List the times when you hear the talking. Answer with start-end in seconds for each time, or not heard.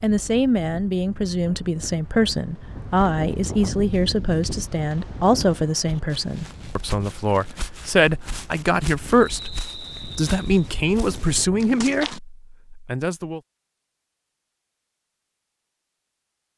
0.0-13.4.